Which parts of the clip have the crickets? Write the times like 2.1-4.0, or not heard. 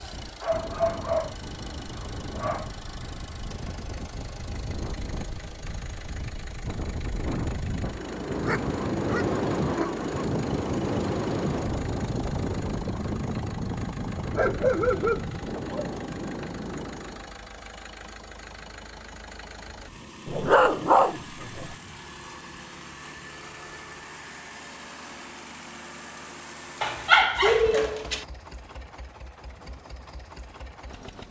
not heard.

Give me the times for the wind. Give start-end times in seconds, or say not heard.
0.0-17.3.